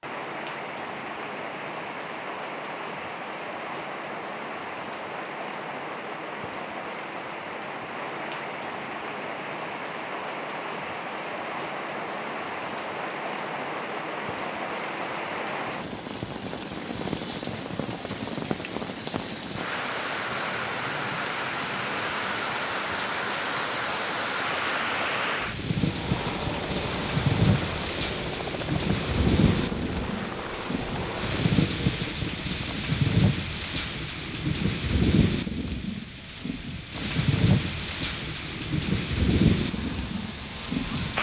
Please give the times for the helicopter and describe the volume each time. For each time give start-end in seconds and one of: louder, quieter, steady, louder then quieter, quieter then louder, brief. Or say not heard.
25.8-31.6 steady
39.5-41.1 brief.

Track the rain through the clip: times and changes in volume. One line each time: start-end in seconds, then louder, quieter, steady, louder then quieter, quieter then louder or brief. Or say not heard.
0.0-41.1 louder.